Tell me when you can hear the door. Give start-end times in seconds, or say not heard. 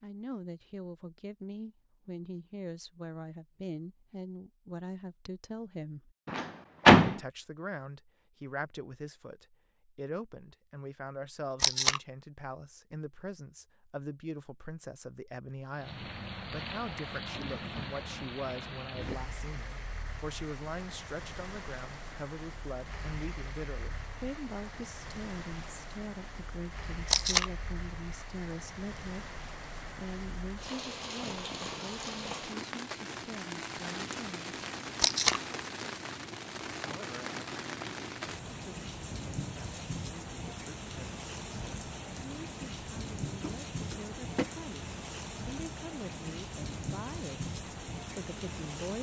6.2-7.2, 43.4-44.5.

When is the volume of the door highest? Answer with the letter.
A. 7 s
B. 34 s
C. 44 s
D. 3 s
A.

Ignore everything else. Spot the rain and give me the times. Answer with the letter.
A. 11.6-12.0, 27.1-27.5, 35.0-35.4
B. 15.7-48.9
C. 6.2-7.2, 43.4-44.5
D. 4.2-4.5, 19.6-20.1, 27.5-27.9
B.